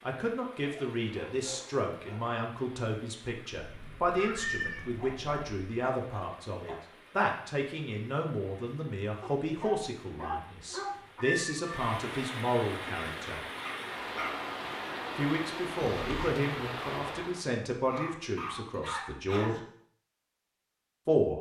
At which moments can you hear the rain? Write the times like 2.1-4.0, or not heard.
0.0-17.5.